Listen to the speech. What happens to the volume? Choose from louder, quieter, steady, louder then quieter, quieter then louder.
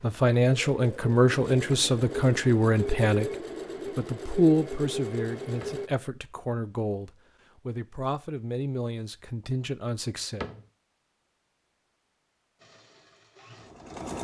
quieter.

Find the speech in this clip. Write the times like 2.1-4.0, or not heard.
0.0-10.4.